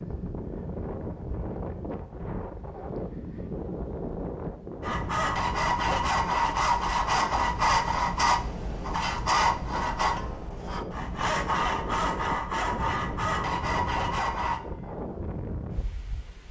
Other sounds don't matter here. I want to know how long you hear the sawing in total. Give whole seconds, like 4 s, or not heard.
10 s.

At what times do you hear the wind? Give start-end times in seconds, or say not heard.
0.0-16.4.